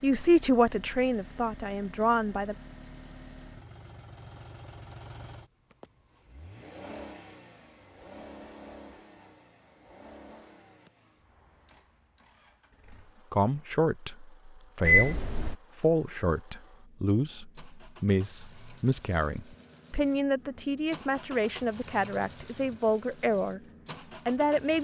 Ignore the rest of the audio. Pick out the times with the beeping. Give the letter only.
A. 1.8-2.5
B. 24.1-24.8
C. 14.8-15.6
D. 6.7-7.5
C.